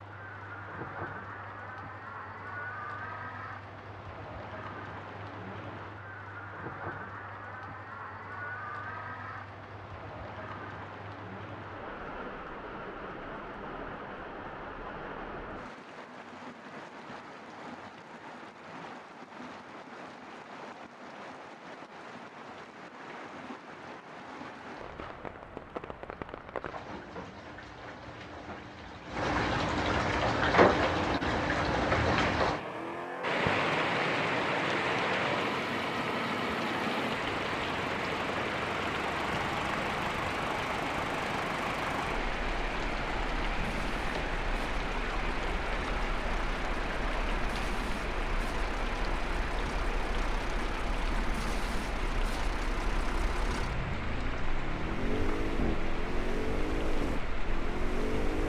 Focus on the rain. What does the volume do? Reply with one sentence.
The loudness of the rain goes up, then down.